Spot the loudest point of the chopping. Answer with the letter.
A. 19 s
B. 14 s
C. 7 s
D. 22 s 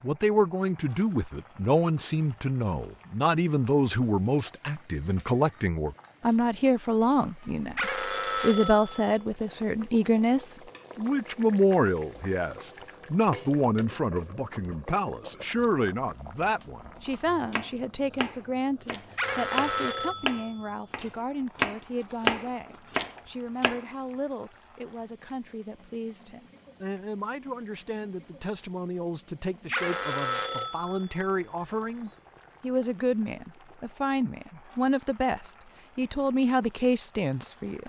D.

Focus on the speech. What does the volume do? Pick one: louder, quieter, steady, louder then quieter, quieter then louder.
quieter then louder.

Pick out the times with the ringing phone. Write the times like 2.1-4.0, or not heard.
7.8-9.2, 19.1-20.7, 29.7-32.1.